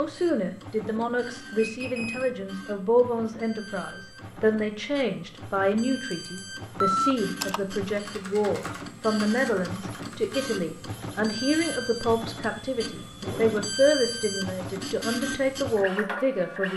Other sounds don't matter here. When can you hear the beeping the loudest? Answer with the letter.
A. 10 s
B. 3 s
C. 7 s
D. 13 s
C.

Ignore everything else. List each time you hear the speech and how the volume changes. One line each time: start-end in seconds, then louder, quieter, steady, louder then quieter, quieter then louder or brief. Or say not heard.
0.0-16.7 steady.